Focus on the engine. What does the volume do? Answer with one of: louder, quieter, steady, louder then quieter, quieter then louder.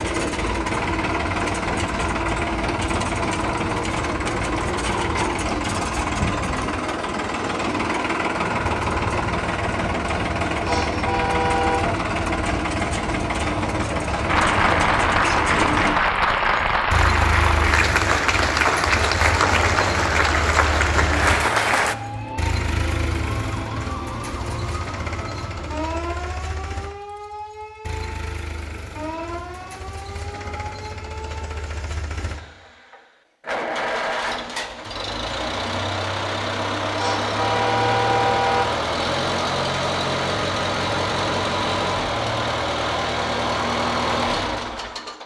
quieter then louder.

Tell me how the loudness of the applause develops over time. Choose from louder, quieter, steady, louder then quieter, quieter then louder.
steady.